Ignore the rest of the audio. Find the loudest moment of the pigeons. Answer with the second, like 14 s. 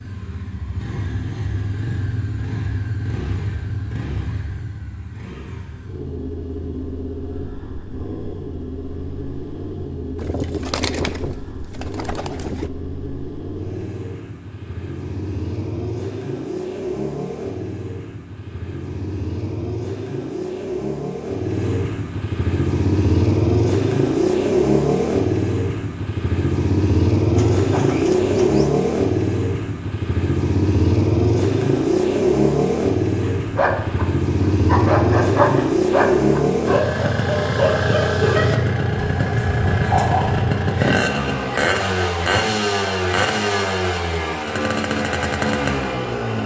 11 s.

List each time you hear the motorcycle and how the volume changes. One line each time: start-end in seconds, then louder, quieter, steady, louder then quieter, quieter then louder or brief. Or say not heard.
0.0-46.4 louder.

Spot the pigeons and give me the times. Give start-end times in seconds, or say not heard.
10.2-12.7, 27.4-28.7.